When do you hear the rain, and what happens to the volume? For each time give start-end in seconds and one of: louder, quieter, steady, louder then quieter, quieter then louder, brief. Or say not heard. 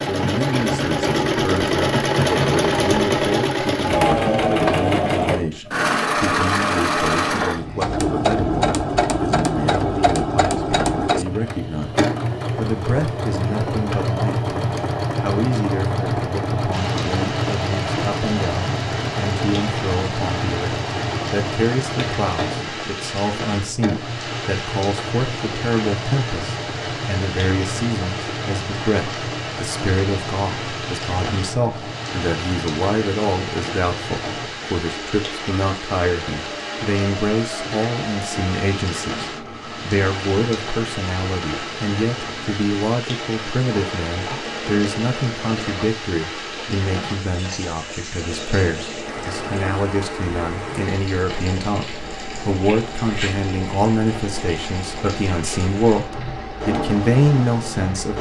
16.7-58.1 steady.